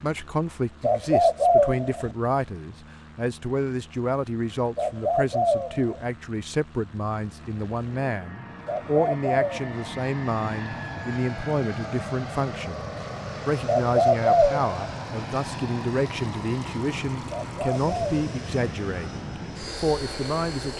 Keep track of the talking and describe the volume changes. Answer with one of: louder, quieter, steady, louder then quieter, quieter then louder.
steady.